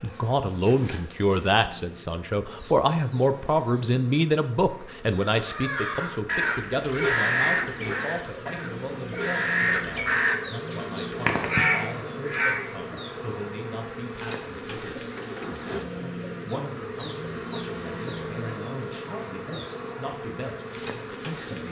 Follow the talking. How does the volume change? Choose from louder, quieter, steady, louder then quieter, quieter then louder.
quieter.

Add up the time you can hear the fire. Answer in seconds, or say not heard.
not heard.